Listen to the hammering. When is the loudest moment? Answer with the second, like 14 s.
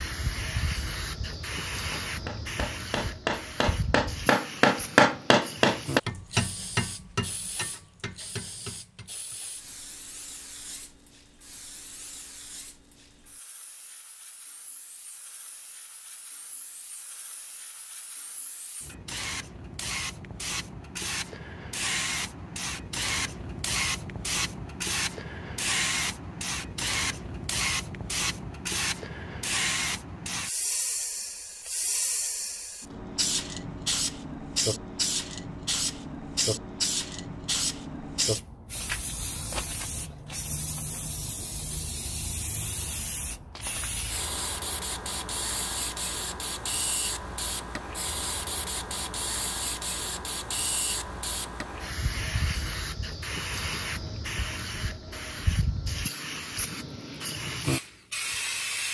5 s.